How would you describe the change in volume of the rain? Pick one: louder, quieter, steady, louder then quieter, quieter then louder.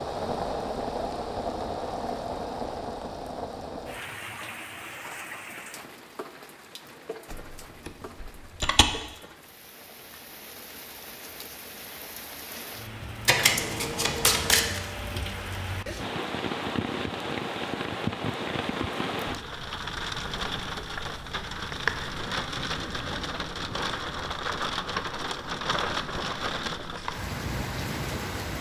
quieter then louder.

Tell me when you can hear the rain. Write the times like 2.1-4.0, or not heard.
0.0-28.5.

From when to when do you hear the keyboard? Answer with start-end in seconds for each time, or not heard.
7.3-8.8.